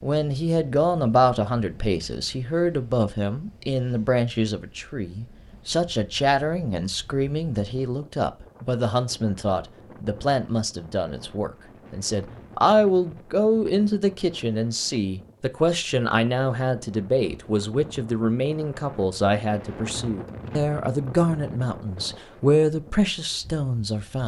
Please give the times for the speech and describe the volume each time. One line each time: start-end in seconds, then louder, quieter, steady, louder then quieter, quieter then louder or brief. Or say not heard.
0.0-24.2 steady.